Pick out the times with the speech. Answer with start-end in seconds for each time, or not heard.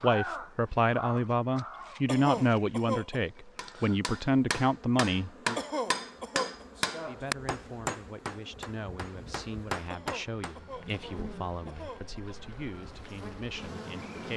0.0-5.6, 7.0-14.3.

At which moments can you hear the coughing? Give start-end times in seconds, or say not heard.
2.0-3.2, 5.5-6.7, 9.9-12.4.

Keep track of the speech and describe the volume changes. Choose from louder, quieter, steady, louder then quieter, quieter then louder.
quieter.